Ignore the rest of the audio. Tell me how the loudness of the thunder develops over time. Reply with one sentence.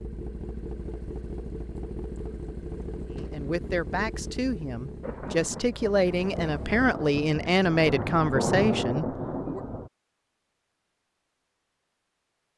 The volume of the thunder goes up.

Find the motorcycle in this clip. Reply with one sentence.
You can hear the motorcycle from 0.0 to 7.0 s.